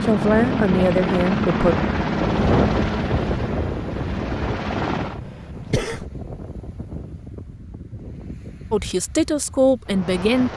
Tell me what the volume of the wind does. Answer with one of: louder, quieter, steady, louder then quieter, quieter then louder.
quieter.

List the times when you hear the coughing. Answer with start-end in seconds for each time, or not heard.
5.2-6.0.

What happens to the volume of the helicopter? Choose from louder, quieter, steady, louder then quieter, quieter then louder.
quieter.